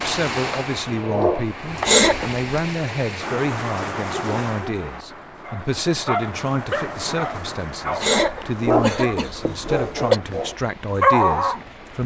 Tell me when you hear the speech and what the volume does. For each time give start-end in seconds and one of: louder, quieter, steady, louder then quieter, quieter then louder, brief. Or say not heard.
0.0-12.0 steady.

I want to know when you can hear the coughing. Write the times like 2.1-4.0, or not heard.
1.9-2.6, 8.0-10.2.